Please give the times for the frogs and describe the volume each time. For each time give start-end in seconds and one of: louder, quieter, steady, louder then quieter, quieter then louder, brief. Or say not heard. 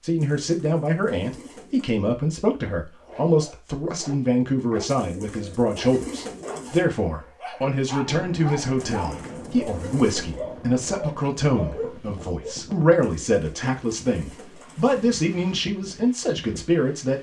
not heard.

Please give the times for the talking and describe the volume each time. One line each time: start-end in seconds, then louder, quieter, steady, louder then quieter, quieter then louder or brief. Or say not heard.
0.0-17.1 steady.